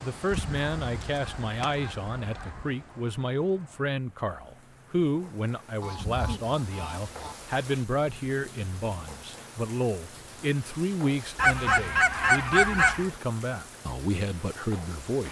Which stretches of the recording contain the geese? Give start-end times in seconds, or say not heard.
0.3-2.7, 5.8-7.3, 11.3-13.1.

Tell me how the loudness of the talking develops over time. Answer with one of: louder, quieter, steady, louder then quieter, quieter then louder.
steady.